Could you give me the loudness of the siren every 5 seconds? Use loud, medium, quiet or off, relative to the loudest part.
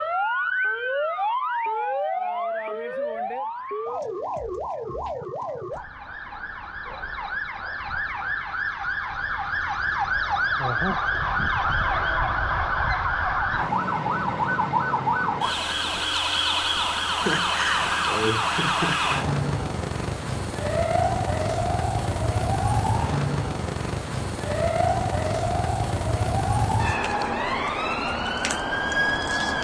loud, medium, loud, loud, loud, loud.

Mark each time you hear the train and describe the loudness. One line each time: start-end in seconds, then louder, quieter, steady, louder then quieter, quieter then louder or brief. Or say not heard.
not heard.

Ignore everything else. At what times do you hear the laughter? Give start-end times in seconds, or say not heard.
17.1-19.2.